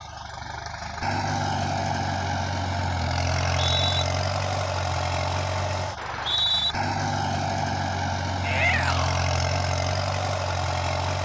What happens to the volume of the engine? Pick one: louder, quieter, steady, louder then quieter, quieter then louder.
steady.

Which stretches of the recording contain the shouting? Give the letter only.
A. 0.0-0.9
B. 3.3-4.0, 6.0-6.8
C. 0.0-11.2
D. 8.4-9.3
D.